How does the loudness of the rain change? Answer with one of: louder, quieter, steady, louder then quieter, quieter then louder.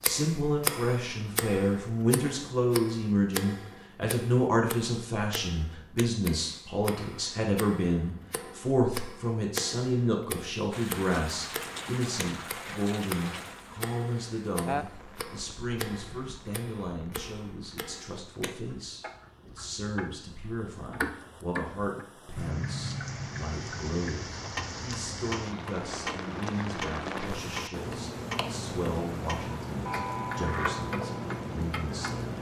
quieter then louder.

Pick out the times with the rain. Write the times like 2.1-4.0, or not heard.
10.7-32.3.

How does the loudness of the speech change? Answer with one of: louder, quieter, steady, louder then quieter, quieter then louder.
quieter.